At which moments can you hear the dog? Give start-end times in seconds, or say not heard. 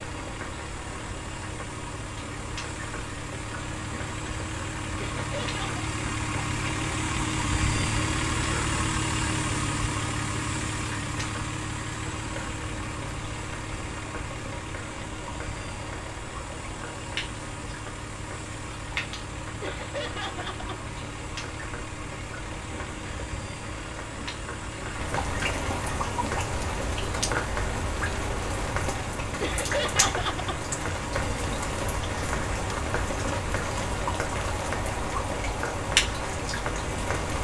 not heard.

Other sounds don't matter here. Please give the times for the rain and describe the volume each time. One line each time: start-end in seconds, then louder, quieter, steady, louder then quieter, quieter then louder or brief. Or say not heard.
0.0-37.3 louder.